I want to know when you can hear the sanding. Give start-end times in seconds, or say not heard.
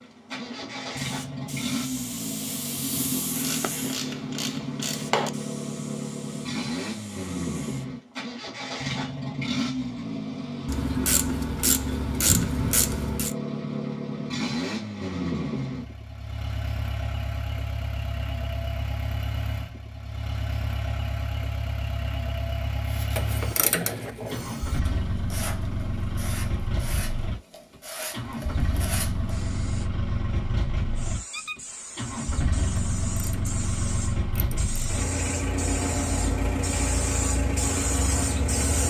22.8-29.4.